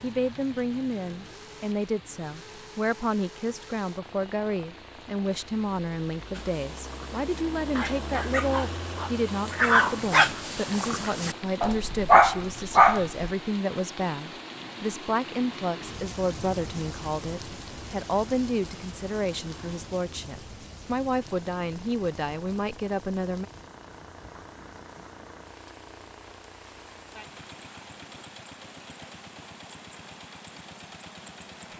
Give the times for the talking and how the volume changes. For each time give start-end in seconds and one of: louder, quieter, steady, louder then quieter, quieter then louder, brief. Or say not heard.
0.0-23.4 steady.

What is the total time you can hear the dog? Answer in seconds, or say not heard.
7 s.